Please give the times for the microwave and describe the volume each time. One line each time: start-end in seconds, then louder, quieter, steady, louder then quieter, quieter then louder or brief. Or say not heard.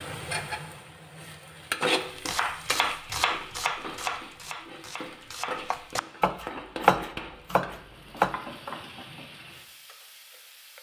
not heard.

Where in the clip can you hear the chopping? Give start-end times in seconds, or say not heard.
2.0-8.3.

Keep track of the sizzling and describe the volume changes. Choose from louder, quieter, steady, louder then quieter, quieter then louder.
quieter.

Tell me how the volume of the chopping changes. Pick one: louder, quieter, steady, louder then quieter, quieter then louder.
quieter then louder.